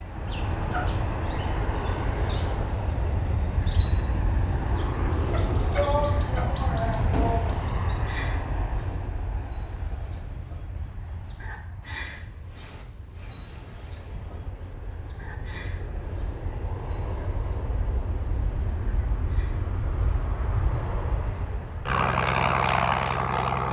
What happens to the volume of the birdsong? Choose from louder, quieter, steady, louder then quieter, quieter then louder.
louder then quieter.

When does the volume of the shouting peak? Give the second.
6 s.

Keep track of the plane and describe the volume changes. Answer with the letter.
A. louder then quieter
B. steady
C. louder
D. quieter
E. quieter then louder
E.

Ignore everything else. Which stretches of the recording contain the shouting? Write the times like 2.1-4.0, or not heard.
5.7-7.5.